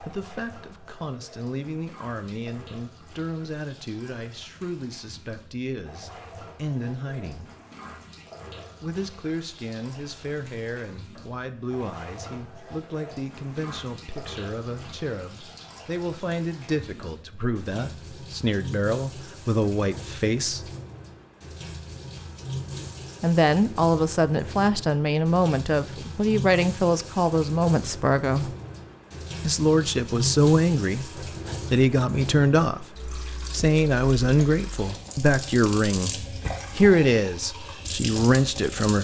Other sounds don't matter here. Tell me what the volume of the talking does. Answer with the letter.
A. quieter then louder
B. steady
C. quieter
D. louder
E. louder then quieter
D.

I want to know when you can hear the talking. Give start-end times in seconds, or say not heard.
0.0-7.5, 8.8-20.7, 23.2-28.6, 29.4-38.9.